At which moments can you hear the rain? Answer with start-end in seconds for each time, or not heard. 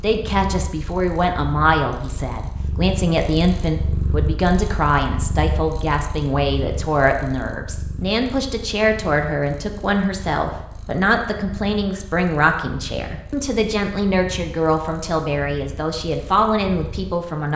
not heard.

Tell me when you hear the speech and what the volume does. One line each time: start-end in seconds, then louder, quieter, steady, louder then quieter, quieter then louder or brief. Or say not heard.
0.0-17.5 steady.